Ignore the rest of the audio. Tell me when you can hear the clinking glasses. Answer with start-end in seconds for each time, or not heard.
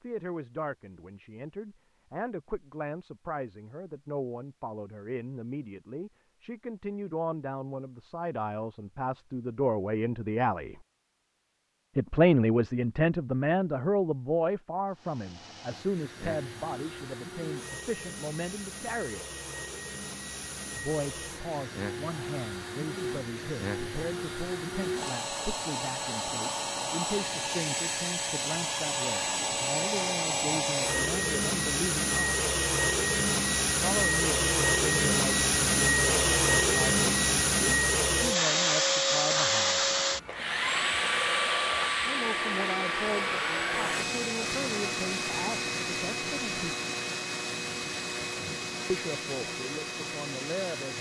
not heard.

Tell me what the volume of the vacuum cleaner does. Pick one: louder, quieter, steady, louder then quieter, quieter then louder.
louder then quieter.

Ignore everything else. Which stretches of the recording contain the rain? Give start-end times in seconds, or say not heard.
not heard.